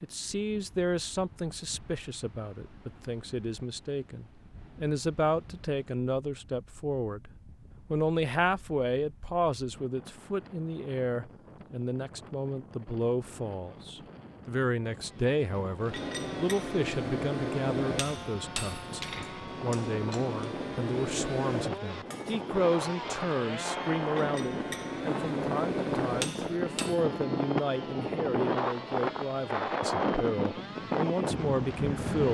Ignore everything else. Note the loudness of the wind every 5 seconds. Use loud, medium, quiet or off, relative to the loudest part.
quiet, quiet, quiet, quiet, medium, loud, loud.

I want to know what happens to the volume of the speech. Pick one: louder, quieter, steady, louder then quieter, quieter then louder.
steady.